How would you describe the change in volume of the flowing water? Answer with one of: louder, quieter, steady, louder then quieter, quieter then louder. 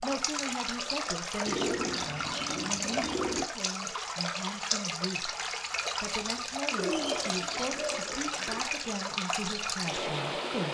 steady.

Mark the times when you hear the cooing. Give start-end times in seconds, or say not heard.
1.4-3.5, 6.8-8.7.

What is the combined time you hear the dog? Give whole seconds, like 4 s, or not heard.
not heard.